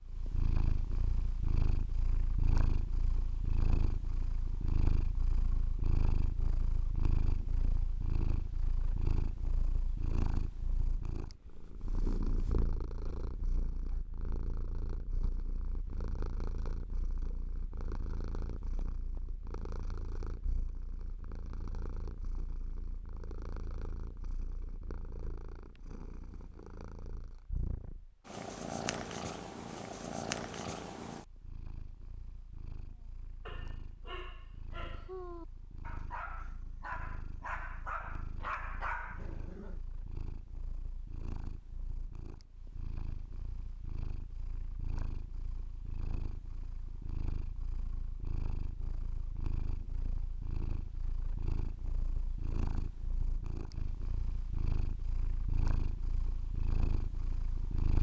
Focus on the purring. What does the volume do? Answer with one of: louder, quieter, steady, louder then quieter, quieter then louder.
quieter then louder.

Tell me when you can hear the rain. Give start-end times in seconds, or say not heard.
not heard.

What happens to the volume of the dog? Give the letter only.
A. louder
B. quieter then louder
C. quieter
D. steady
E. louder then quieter
A.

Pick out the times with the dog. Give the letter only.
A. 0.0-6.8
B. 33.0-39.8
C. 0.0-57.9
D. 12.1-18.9
B.